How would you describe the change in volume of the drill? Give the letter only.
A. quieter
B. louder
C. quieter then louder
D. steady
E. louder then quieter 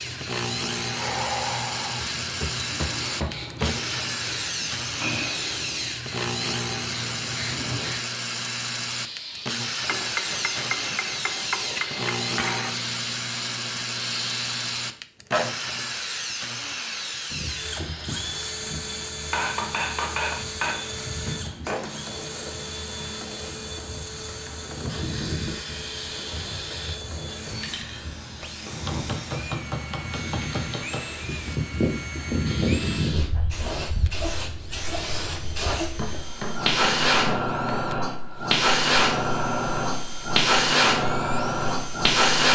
A.